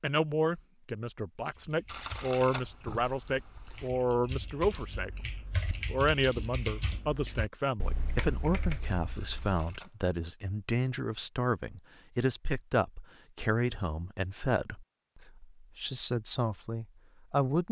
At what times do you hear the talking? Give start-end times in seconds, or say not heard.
0.0-5.2, 5.9-17.6.